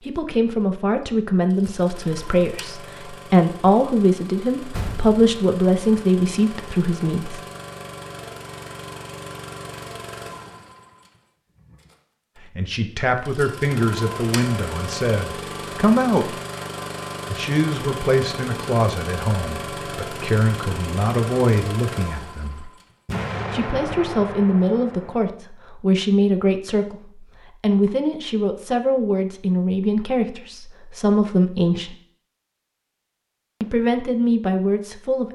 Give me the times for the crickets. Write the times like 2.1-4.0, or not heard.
not heard.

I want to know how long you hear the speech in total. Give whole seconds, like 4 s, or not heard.
27 s.